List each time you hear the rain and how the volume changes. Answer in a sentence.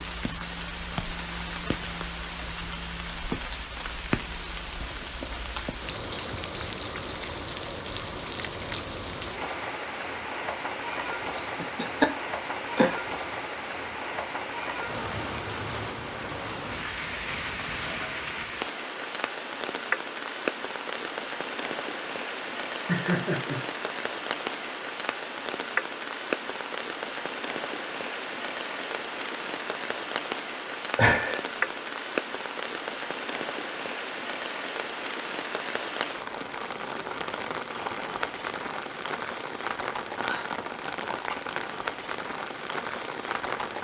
The rain can be heard from 0.0 to 43.7 s, at a steady volume.